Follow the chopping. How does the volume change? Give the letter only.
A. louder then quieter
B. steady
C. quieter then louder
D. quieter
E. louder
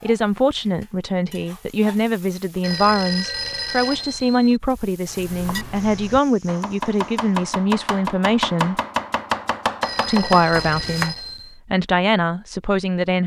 E.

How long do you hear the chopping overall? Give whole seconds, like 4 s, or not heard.
6 s.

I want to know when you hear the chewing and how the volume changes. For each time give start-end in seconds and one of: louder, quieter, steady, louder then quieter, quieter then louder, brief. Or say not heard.
not heard.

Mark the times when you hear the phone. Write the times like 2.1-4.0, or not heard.
2.6-4.6, 9.8-11.6.